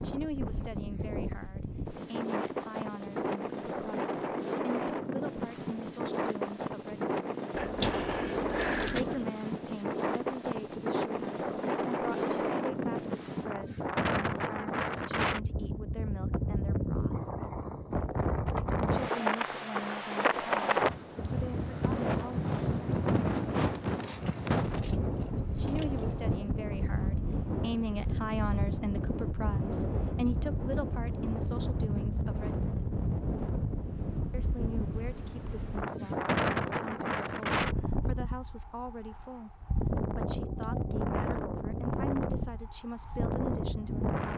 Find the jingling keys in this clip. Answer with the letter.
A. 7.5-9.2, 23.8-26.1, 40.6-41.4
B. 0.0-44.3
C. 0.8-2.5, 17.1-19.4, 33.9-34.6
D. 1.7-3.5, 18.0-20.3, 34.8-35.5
A.